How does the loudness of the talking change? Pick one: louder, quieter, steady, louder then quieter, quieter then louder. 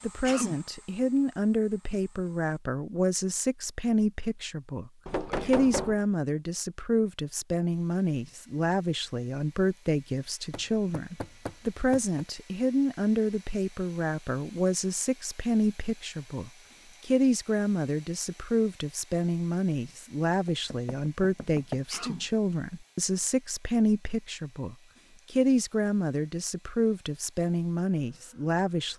steady.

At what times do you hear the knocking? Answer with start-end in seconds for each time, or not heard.
5.0-6.0, 10.5-12.2, 20.4-21.8.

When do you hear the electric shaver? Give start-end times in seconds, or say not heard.
not heard.